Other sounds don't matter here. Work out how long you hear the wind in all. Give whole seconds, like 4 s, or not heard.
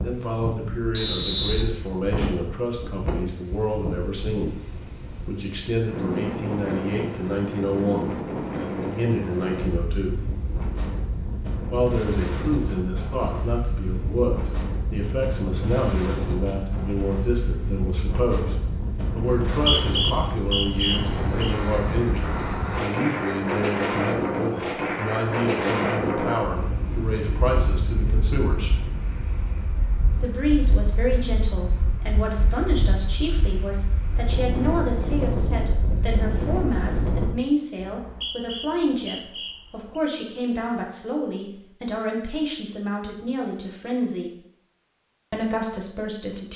37 s.